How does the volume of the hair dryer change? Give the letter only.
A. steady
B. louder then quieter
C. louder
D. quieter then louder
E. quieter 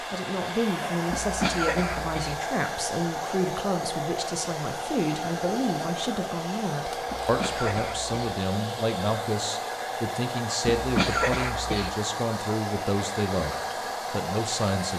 A.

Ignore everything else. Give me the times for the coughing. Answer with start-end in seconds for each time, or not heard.
1.1-2.4, 7.0-8.3, 10.7-11.9.